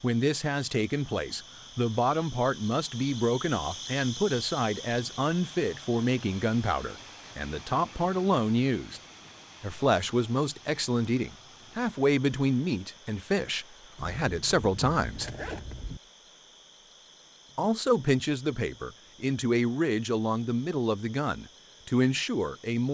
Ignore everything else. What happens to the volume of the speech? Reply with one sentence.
The loudness of the speech stays about the same.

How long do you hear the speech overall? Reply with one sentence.
The speech can be heard for 20 seconds in total.